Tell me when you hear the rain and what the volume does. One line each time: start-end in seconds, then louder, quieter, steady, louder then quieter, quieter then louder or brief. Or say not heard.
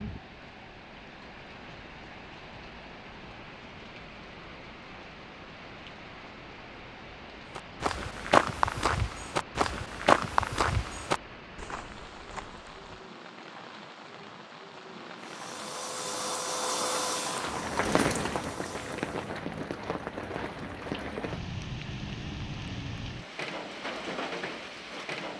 0.0-25.3 louder.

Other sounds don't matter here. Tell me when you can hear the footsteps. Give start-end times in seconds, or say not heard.
7.5-13.1.